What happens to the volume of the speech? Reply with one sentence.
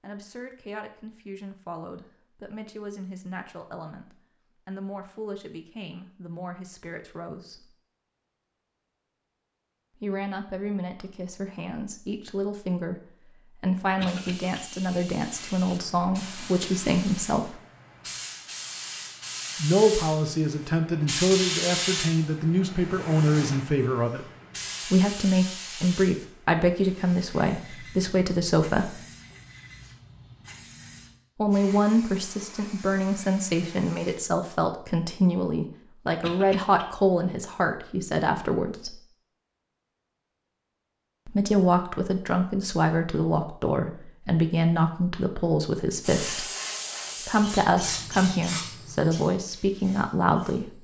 The volume of the speech goes up.